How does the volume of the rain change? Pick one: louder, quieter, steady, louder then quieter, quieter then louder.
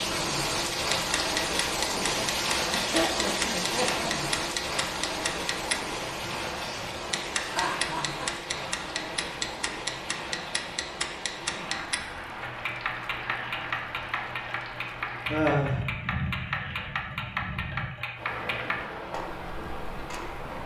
quieter.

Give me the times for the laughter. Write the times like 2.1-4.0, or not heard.
1.9-4.3, 7.3-8.3, 15.3-15.8.